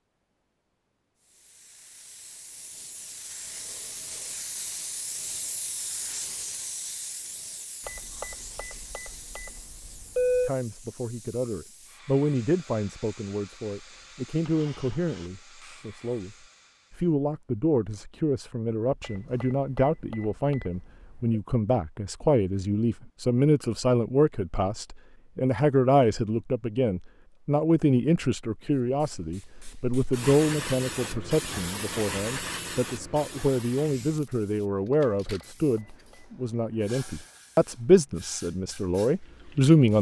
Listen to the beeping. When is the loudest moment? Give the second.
10 s.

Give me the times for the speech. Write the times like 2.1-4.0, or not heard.
10.4-39.9.